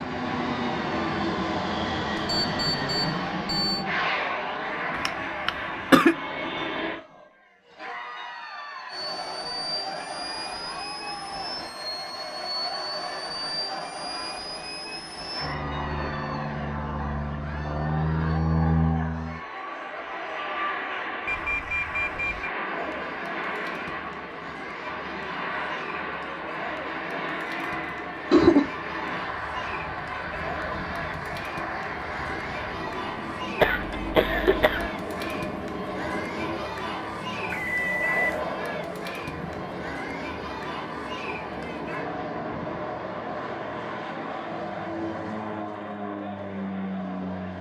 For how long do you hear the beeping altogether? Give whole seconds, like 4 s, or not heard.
4 s.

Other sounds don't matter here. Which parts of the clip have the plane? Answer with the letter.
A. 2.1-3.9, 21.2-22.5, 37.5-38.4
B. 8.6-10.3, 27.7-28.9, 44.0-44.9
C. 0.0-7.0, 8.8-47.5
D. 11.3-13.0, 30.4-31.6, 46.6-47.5
C.